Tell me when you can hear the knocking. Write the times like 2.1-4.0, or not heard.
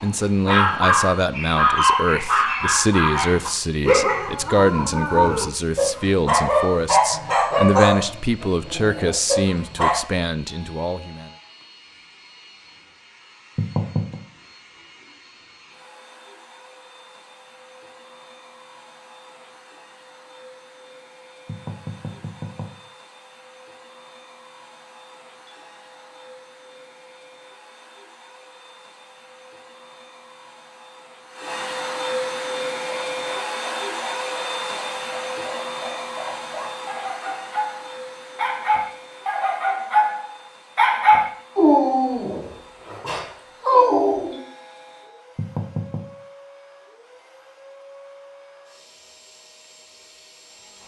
13.6-14.2, 21.4-22.7, 45.4-46.0.